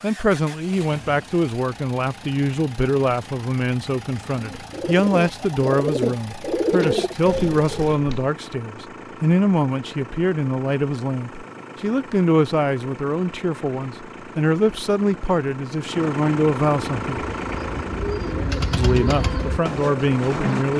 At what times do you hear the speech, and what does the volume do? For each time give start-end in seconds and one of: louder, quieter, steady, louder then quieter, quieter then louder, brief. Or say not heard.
0.0-17.2 steady
18.8-20.7 brief.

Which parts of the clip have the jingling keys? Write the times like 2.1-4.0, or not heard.
not heard.